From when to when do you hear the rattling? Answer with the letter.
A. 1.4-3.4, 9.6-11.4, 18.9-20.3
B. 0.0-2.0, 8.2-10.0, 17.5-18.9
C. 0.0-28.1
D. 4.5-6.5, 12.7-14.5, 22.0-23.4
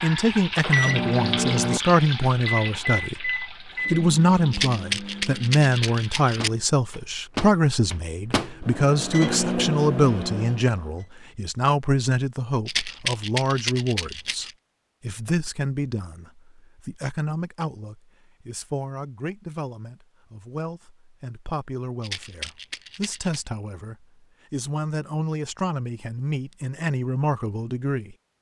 D.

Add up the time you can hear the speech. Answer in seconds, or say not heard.
28 s.